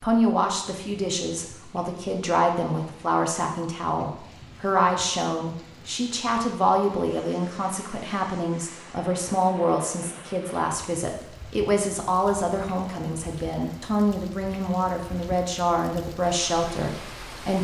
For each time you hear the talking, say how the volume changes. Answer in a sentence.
The talking can be heard from 0.0 to 17.5 s, at a steady volume.